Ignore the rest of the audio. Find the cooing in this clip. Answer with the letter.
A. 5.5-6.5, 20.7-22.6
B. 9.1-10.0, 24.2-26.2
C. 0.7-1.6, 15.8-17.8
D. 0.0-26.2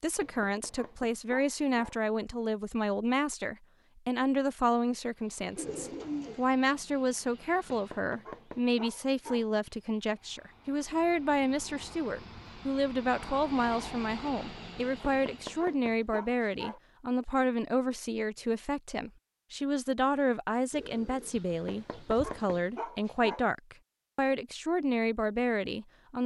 A.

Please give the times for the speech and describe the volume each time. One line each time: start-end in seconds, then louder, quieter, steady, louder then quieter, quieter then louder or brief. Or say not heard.
0.0-26.2 steady.